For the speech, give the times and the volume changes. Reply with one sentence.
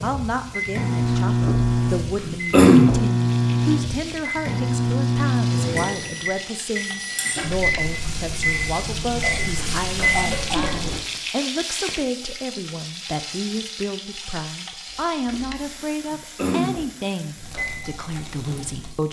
The speech can be heard from 0.0 to 19.0 s, at a steady volume.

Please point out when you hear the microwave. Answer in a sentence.
You can hear the microwave from 0.0 to 11.0 s and from 17.4 to 18.9 s.